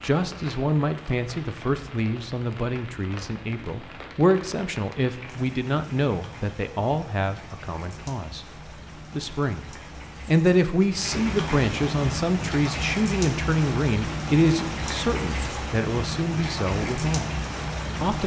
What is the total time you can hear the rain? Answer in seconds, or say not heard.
18 s.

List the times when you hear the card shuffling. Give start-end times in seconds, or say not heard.
not heard.